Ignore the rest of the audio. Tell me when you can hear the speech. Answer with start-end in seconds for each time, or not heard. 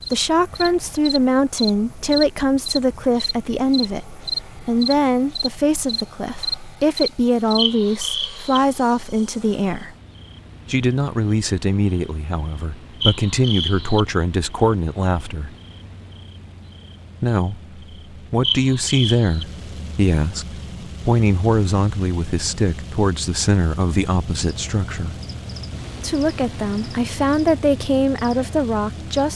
0.0-9.9, 10.7-15.5, 17.2-25.1, 25.9-29.3.